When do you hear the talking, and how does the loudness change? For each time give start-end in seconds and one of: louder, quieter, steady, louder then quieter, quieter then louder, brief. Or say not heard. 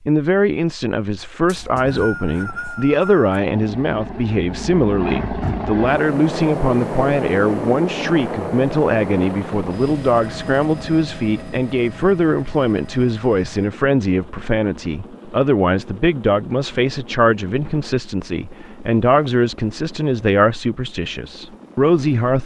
0.1-22.4 steady.